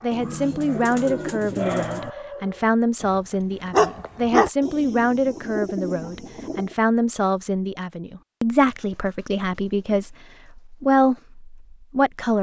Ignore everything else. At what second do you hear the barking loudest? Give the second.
4 s.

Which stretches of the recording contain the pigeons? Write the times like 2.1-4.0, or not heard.
0.1-2.1, 4.6-6.8, 8.8-10.6.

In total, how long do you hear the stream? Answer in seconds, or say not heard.
not heard.